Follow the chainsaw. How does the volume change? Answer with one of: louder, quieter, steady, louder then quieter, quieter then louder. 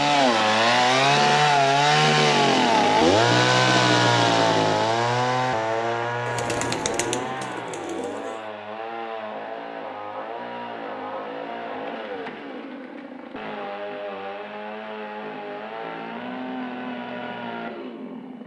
quieter.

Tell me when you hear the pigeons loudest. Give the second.
7 s.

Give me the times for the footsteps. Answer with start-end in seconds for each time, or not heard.
not heard.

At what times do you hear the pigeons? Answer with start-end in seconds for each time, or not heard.
6.2-8.4.